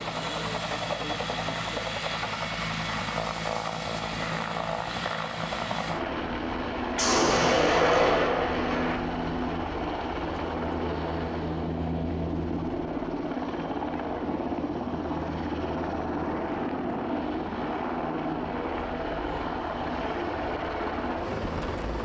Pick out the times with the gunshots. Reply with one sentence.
You can hear the gunshots from 7.0 to 8.9 s.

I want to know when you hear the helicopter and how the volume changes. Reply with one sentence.
The helicopter can be heard from 0.0 to 22.0 s, at a steady volume.